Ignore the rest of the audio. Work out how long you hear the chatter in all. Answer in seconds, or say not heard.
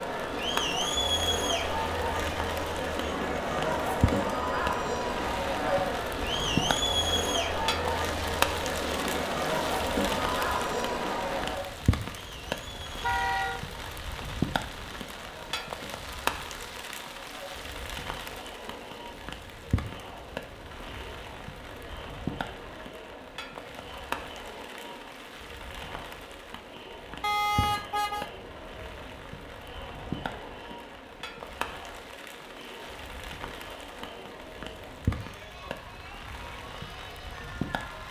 38 s.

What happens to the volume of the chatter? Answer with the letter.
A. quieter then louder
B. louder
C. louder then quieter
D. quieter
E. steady
D.